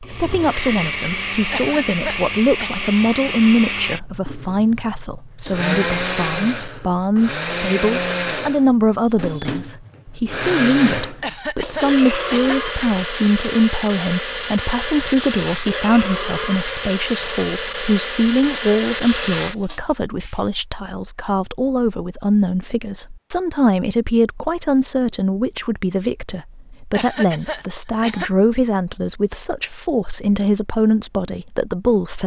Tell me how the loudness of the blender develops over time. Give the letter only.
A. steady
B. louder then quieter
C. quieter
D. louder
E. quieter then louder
A.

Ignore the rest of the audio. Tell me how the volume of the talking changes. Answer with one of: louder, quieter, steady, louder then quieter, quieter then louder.
steady.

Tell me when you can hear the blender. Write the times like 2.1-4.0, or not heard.
0.0-20.4.